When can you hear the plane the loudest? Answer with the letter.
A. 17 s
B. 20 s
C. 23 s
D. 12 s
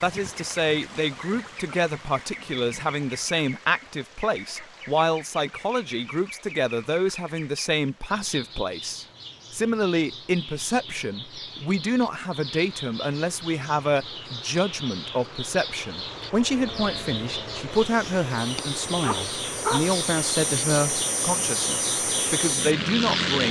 C.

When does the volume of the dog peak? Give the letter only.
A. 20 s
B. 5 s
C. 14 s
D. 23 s
A.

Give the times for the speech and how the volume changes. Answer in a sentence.
You can hear the speech from 0.0 to 23.4 s, at a steady volume.